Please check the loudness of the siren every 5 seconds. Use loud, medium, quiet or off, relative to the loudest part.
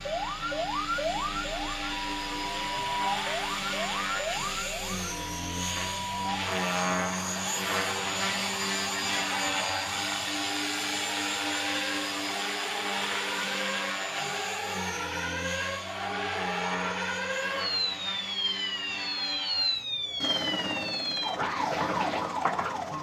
loud, medium, medium, loud, loud.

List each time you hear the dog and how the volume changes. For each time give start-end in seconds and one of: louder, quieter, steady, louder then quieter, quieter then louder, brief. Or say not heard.
not heard.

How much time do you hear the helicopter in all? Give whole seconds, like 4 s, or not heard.
23 s.